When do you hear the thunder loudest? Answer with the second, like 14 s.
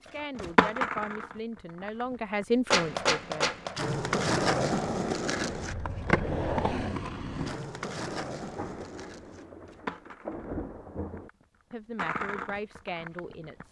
10 s.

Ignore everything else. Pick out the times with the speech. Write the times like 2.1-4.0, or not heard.
0.0-3.5, 11.7-13.6.